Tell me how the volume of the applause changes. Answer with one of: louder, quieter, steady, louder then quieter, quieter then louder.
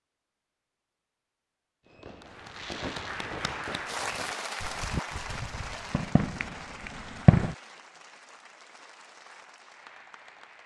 quieter.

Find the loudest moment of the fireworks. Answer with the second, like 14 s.
7 s.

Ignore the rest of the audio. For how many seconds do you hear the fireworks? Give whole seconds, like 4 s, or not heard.
6 s.